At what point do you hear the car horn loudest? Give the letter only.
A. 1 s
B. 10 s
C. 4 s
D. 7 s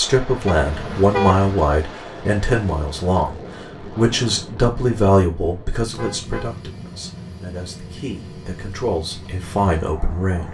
A.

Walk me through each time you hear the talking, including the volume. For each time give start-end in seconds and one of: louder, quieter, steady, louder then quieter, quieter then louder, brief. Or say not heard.
0.0-10.4 quieter then louder.